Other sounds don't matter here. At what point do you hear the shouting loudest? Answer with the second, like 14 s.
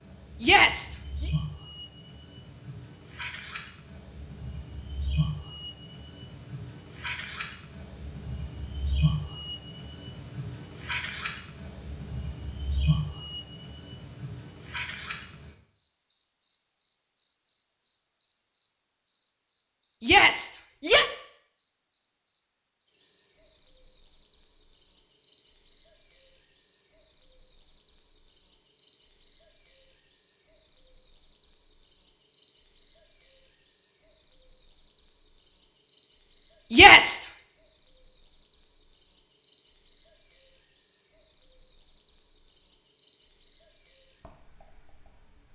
37 s.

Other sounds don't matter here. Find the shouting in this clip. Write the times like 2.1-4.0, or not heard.
0.4-1.2, 20.0-21.1, 36.7-37.2.